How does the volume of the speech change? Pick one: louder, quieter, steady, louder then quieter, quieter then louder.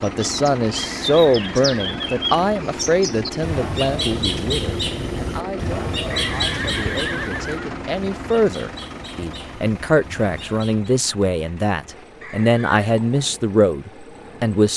quieter then louder.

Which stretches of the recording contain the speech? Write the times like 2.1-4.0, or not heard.
0.0-14.7.